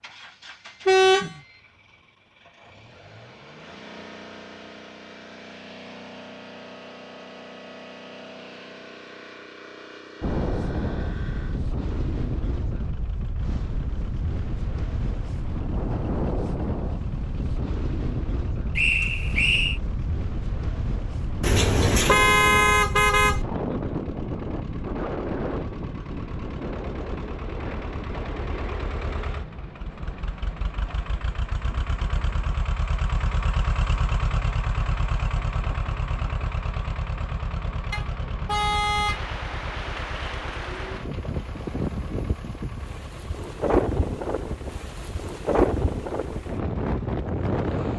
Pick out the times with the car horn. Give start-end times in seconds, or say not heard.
0.8-1.3, 21.4-23.4, 37.9-39.6.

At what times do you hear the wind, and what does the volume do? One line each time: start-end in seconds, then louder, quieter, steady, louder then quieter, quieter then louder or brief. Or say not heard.
10.2-47.9 quieter then louder.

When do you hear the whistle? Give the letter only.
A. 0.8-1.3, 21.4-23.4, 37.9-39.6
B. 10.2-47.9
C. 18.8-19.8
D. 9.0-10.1
C.